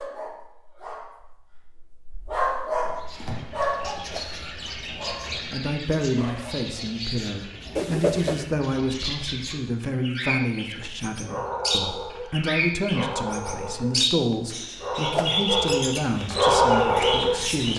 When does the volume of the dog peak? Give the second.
17 s.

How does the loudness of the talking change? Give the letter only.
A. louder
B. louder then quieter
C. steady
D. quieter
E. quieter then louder
C.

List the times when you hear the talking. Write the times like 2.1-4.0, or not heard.
5.5-17.7.